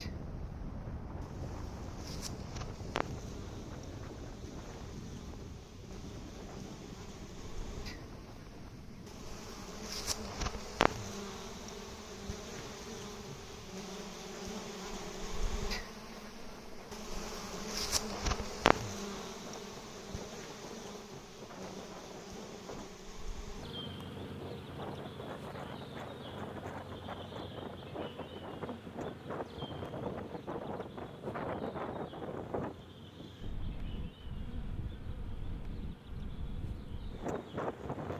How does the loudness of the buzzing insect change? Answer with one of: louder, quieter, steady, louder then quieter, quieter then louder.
louder then quieter.